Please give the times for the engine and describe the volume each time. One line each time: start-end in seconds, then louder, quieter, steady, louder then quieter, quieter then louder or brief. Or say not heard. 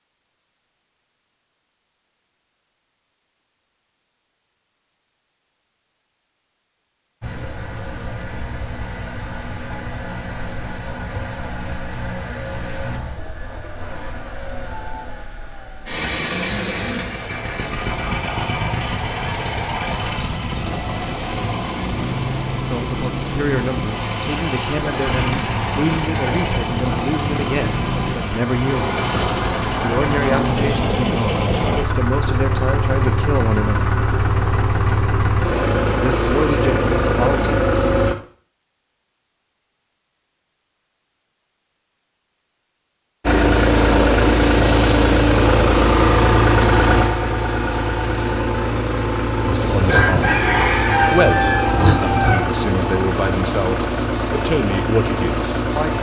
7.2-38.1 louder
43.2-55.9 quieter.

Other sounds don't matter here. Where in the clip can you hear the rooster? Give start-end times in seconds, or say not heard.
49.5-52.5.